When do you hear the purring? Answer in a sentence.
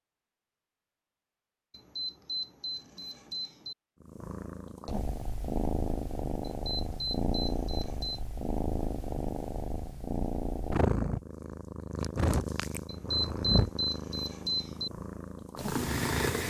You can hear the purring from 4.0 to 16.4 s.